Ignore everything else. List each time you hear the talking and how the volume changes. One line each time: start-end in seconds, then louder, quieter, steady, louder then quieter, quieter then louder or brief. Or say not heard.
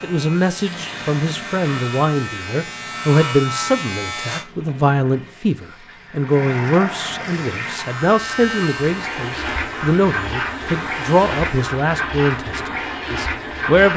0.0-13.9 steady.